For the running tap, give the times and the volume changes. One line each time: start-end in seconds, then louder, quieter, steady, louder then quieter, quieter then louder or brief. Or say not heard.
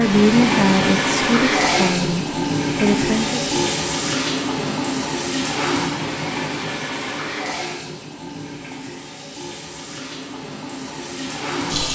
0.0-11.9 quieter.